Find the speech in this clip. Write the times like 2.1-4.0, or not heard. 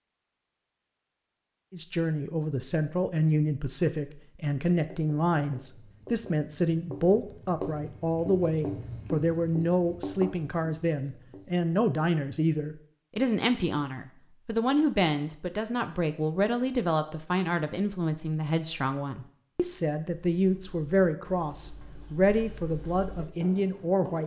1.7-24.2.